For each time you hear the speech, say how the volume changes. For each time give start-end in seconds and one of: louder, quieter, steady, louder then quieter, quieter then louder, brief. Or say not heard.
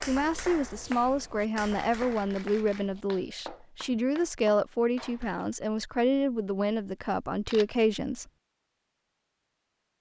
0.1-8.2 steady.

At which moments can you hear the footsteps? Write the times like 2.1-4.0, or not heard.
not heard.